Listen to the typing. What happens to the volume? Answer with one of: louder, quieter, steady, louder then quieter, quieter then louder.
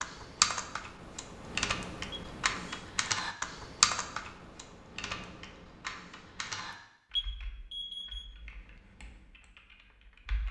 quieter.